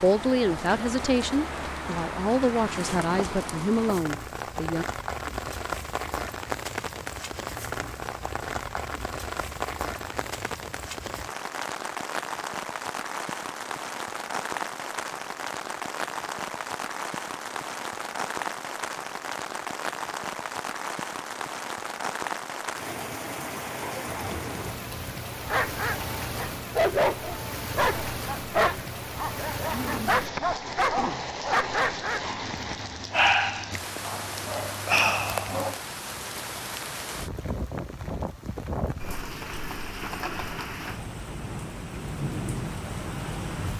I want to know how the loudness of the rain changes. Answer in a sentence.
The volume of the rain stays about the same.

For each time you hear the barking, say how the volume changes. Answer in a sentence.
The barking can be heard from 25.4 to 35.8 s, at a steady volume.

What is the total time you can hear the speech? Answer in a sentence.
You can hear the speech for 5 seconds altogether.